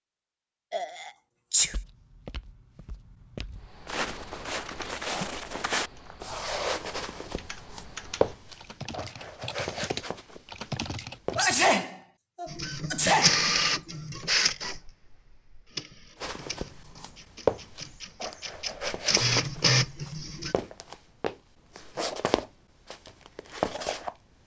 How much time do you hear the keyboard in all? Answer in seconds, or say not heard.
8 s.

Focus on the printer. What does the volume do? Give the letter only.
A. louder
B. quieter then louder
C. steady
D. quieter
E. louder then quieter
B.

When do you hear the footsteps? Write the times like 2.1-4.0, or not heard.
1.6-11.5, 16.2-24.4.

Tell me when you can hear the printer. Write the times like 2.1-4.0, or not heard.
12.4-20.6.